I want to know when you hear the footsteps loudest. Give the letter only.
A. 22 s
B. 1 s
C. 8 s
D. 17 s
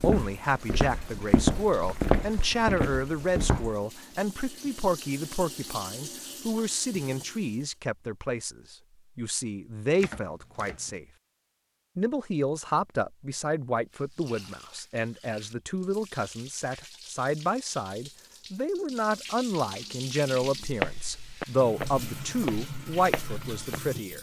B.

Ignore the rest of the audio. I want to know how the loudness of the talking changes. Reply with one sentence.
The loudness of the talking stays about the same.